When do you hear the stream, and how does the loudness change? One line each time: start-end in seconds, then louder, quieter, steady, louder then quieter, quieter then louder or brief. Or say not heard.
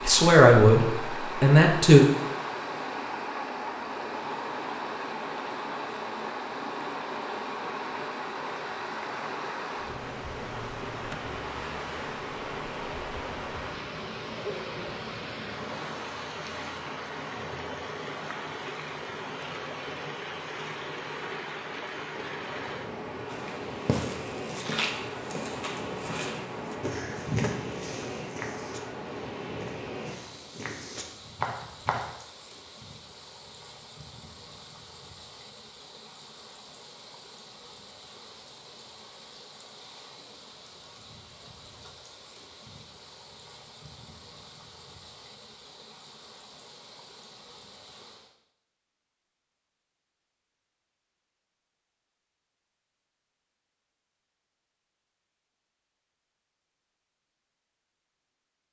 0.0-48.4 quieter.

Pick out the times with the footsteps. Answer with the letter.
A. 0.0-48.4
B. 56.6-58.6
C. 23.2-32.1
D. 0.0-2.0
C.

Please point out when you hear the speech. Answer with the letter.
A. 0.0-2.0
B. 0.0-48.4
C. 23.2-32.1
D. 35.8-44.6
A.